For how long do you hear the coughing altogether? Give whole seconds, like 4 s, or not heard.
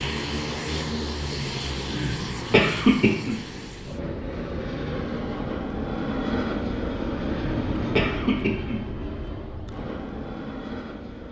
3 s.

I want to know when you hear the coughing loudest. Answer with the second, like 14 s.
3 s.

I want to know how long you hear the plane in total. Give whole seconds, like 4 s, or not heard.
11 s.